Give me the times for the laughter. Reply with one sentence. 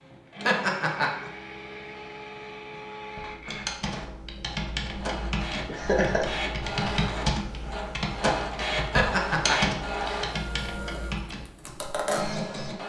You can hear the laughter from 0.5 to 1.3 s, from 5.7 to 6.2 s and from 8.9 to 9.6 s.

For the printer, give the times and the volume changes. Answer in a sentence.
You can hear the printer from 0.0 to 12.8 s, getting louder.